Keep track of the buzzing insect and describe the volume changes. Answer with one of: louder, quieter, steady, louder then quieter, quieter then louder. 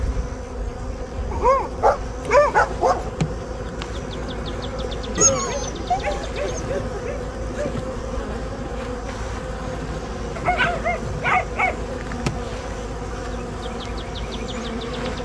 steady.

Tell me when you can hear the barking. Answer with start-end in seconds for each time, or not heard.
1.3-3.1, 5.2-7.9, 10.3-11.8.